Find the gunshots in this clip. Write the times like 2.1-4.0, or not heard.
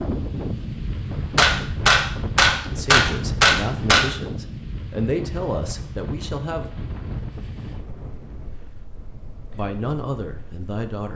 1.1-4.0.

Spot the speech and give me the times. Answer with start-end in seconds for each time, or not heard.
2.7-6.8, 9.5-11.1.